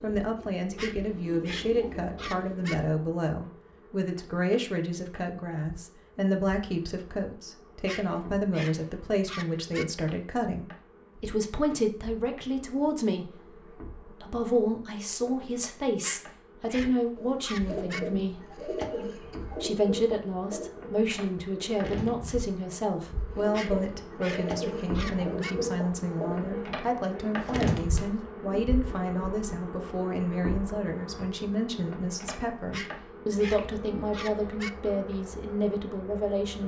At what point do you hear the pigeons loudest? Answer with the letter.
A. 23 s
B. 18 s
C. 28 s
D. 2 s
C.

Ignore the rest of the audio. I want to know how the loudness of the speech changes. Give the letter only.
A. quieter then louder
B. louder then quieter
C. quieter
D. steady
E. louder
D.